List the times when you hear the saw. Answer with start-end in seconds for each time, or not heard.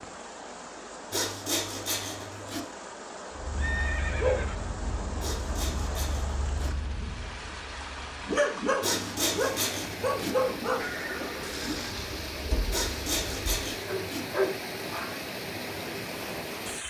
1.1-2.6, 5.2-6.7, 8.8-10.3, 12.7-14.2.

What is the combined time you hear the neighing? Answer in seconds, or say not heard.
3 s.